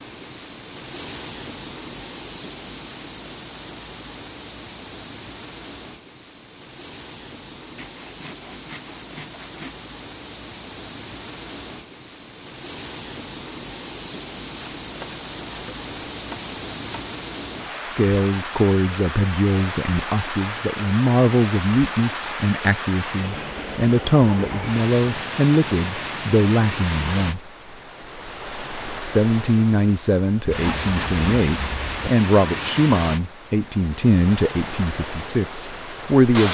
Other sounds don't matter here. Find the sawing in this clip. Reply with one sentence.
The sawing can be heard from 7.8 to 9.8 s, from 14.5 to 17.1 s and from 30.4 to 32.1 s.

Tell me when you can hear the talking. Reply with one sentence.
You can hear the talking from 17.9 to 27.4 s and from 29.0 to 36.4 s.